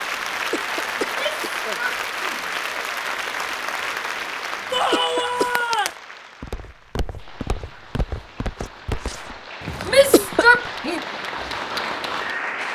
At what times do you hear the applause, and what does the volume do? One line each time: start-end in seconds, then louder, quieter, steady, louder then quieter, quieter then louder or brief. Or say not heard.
0.0-12.7 quieter then louder.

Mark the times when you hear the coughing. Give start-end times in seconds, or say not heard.
0.5-1.8, 4.9-5.7, 9.9-10.4.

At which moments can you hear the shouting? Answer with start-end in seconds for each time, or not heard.
1.0-2.5, 4.7-5.9, 9.8-11.0.